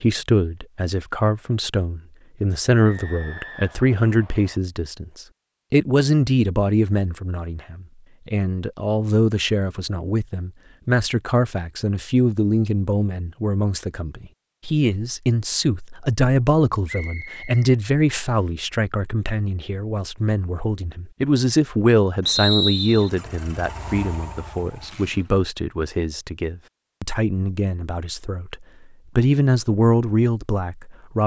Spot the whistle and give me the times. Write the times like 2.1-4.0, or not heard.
2.9-4.6, 16.9-18.4, 22.2-23.1.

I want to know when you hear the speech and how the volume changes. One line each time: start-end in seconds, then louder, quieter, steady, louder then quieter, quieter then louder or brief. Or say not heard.
0.0-31.2 steady.